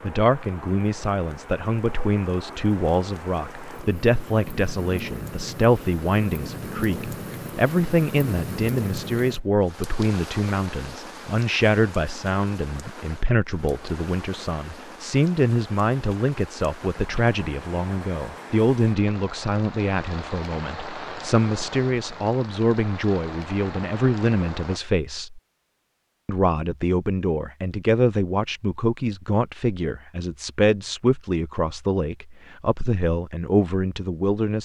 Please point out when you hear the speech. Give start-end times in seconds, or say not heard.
0.0-25.4, 26.2-34.6.